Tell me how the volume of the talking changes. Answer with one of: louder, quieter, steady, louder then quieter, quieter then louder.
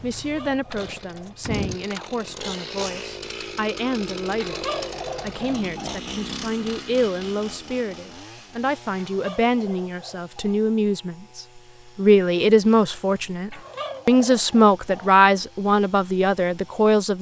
louder.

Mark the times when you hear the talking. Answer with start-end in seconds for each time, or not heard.
0.0-4.5, 5.2-17.1.